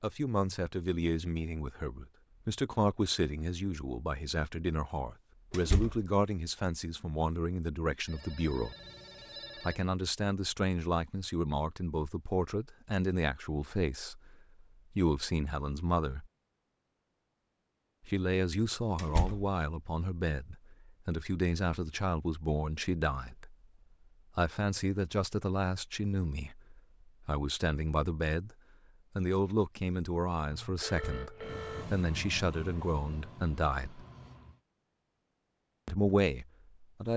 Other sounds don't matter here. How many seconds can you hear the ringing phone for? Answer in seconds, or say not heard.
3 s.